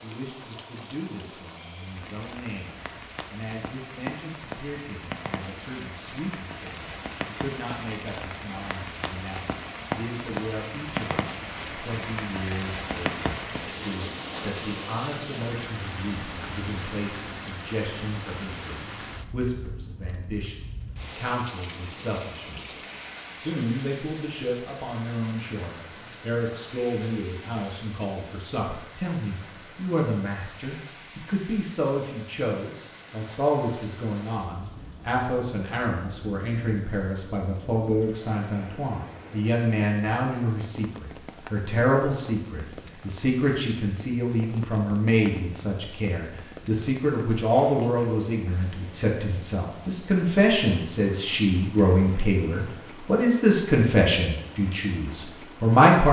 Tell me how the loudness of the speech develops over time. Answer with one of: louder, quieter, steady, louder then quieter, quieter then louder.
louder.